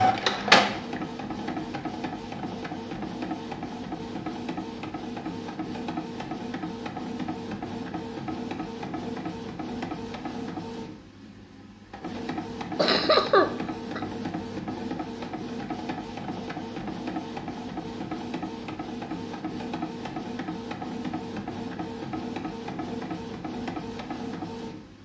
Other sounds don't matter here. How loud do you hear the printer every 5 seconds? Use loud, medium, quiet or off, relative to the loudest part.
loud, medium, medium, medium, medium.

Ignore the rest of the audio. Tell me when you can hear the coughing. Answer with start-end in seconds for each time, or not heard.
12.8-14.0.